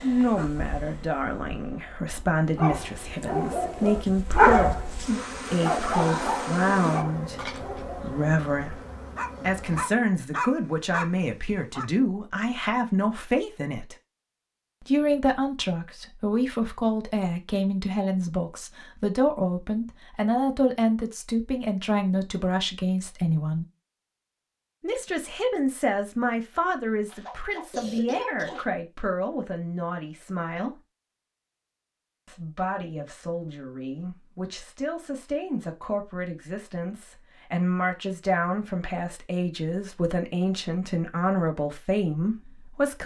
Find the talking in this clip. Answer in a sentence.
The talking can be heard from 0.0 to 8.8 s, from 9.4 to 13.9 s, from 14.8 to 23.6 s, from 24.8 to 30.8 s and from 32.2 to 43.0 s.